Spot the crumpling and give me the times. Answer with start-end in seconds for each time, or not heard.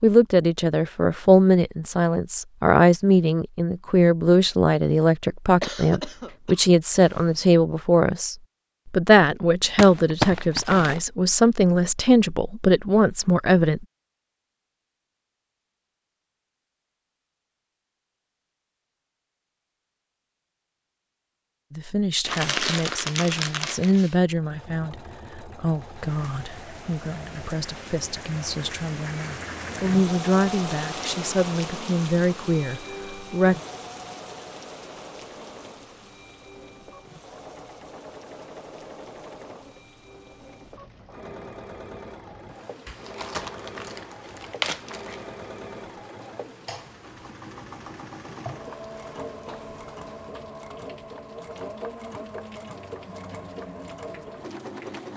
9.8-11.0, 22.2-24.1, 42.9-45.2.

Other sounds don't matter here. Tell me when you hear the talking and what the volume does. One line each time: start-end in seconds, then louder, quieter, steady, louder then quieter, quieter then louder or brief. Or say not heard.
0.0-13.8 steady
21.7-33.5 quieter then louder.